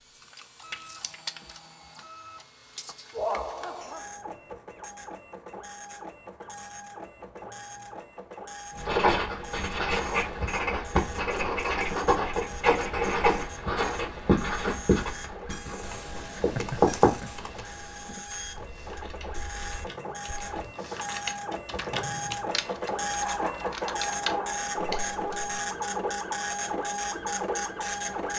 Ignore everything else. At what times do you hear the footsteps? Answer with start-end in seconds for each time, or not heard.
not heard.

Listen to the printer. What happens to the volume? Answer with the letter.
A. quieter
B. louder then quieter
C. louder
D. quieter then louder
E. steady
C.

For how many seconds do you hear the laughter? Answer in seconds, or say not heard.
3 s.